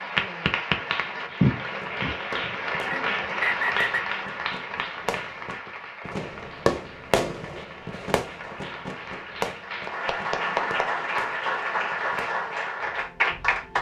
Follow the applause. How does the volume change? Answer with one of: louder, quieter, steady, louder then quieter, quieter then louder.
quieter then louder.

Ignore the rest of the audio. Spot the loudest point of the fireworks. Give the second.
7 s.